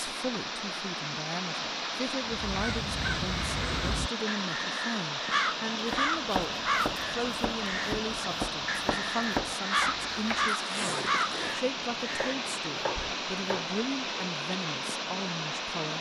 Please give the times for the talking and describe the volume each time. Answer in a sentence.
You can hear the talking from 0.1 to 15.9 s, at a steady volume.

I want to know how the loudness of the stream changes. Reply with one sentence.
The loudness of the stream stays about the same.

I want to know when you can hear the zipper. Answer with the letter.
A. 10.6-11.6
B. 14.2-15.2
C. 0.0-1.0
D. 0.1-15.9
A.